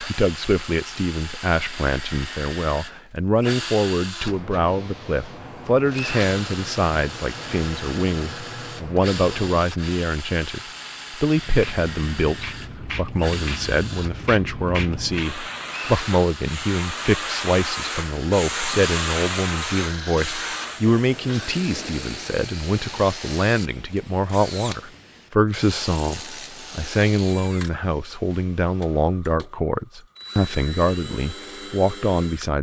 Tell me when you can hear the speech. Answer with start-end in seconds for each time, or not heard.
0.0-32.5.